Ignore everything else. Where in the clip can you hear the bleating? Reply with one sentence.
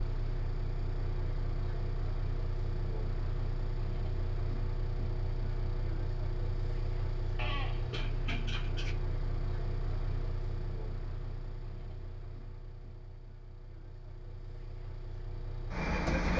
You can hear the bleating from 7.3 to 8.9 s.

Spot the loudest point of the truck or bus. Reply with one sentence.
The loudest moment of the truck or bus is at 16 seconds.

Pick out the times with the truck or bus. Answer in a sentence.
You can hear the truck or bus from 0.0 to 16.3 s.